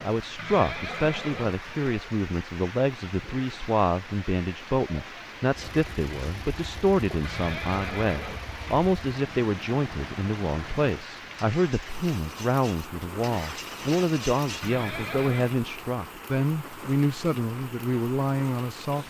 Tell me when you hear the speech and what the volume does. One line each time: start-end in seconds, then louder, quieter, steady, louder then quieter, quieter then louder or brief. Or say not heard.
0.0-19.0 steady.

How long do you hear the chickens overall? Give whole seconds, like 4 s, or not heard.
not heard.